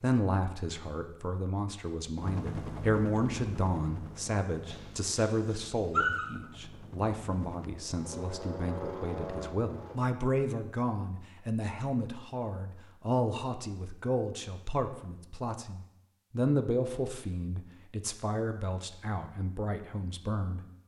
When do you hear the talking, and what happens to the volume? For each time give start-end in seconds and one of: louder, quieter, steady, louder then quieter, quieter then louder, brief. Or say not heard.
0.0-20.6 steady.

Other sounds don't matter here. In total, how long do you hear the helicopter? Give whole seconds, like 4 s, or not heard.
8 s.